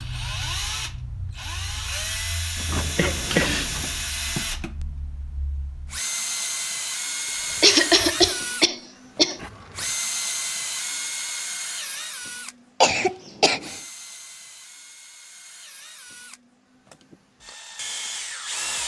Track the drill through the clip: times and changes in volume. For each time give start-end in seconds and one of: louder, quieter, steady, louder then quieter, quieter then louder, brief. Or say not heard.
0.0-18.8 quieter.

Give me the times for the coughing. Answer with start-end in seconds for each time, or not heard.
3.0-3.7, 7.6-9.4, 12.8-13.8.